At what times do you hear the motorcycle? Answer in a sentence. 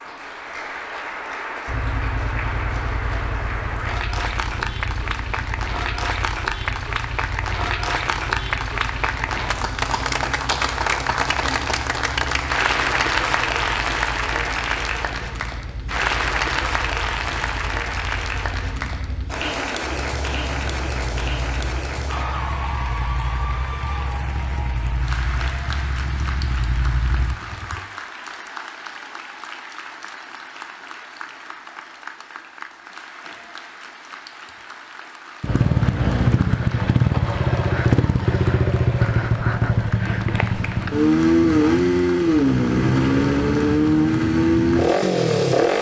You can hear the motorcycle from 1.6 to 27.8 s and from 35.4 to 45.7 s.